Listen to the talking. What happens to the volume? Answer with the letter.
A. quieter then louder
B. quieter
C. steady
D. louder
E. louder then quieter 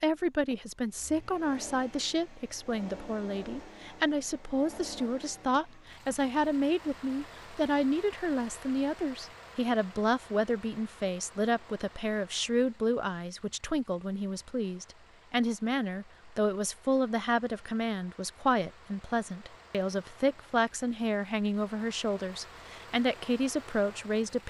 C.